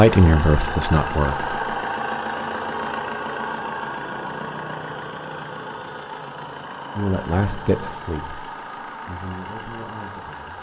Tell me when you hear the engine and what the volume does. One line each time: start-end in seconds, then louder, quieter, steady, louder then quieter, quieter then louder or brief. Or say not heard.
0.0-10.5 quieter.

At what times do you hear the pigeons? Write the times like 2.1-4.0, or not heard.
not heard.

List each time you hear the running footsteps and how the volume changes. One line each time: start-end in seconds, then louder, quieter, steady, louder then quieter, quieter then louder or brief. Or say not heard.
not heard.